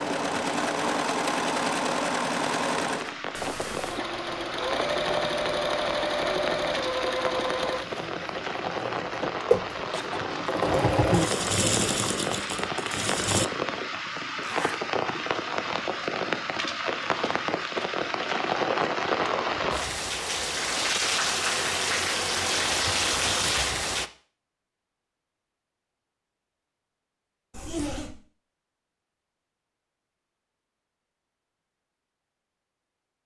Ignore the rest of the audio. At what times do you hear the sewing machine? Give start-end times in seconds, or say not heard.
0.0-13.5.